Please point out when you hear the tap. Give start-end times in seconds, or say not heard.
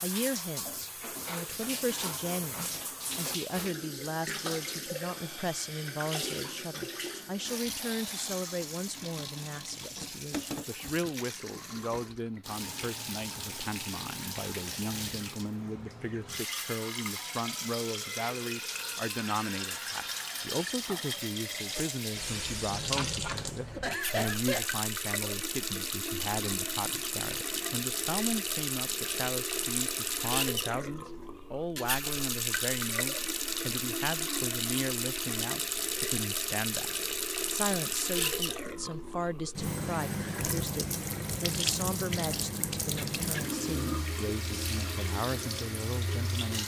0.0-46.6.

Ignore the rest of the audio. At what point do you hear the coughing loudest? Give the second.
24 s.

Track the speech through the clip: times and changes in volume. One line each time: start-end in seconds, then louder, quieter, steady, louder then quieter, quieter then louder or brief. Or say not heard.
0.0-46.6 steady.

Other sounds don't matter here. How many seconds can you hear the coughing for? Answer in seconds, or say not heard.
2 s.